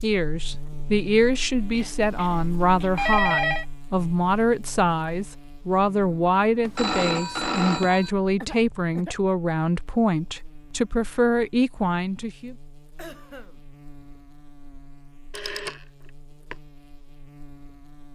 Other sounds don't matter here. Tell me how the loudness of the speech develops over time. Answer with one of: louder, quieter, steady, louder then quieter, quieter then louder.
steady.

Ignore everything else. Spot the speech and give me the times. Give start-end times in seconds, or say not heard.
0.0-12.6.